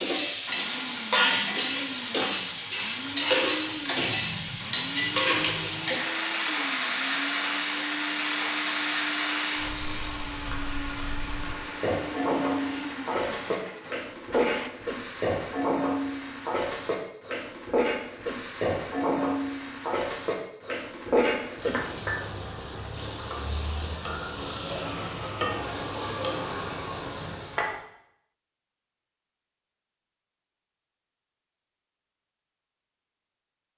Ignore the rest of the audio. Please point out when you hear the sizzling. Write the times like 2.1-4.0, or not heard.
0.0-27.8.